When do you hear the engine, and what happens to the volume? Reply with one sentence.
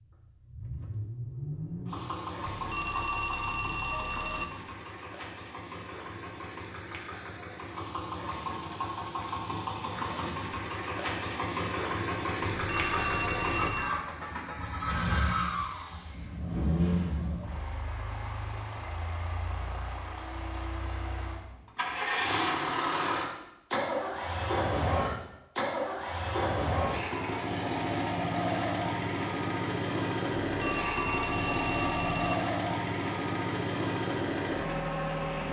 You can hear the engine from 0.0 to 35.4 s, getting louder.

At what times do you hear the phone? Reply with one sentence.
The phone can be heard from 2.5 to 4.5 s, from 12.6 to 13.9 s and from 30.4 to 32.4 s.